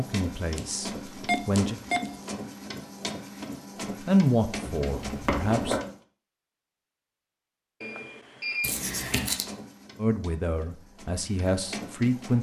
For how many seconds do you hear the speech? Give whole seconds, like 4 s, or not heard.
6 s.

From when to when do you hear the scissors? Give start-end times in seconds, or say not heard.
1.4-2.1, 4.8-5.8, 8.6-9.4.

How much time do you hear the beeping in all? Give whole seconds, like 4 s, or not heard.
2 s.